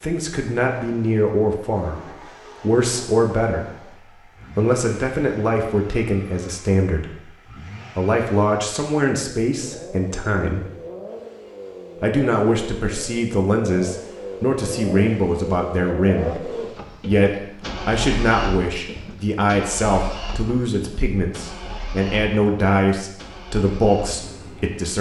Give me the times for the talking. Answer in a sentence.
You can hear the talking from 0.0 to 3.9 s, from 4.5 to 10.7 s and from 11.9 to 24.9 s.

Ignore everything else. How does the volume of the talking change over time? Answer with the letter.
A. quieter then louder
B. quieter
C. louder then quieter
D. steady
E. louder
D.